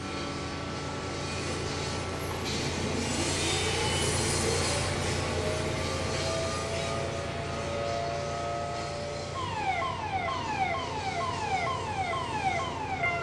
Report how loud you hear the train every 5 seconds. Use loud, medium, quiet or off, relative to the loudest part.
loud, loud, medium.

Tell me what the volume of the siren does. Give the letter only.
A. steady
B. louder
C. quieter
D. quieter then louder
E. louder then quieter
B.